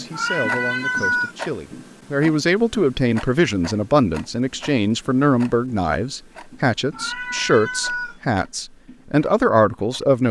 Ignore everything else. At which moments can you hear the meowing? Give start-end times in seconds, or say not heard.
0.1-1.4, 6.9-8.2.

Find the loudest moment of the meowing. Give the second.
1 s.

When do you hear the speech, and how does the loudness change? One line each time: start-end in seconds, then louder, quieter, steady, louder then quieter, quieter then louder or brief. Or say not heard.
0.0-10.2 louder.